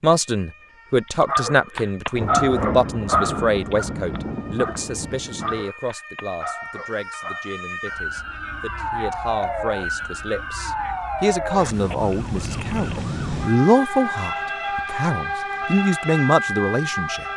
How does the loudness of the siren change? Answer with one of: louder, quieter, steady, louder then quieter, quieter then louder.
louder.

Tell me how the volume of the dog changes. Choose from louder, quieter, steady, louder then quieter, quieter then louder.
quieter.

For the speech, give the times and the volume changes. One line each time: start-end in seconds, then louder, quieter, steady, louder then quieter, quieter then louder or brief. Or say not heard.
0.0-17.2 quieter then louder.